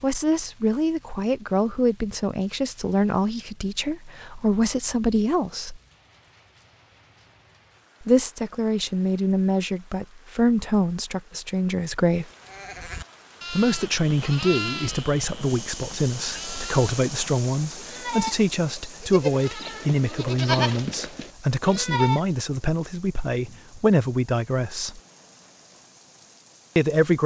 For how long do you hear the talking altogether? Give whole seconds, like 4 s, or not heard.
22 s.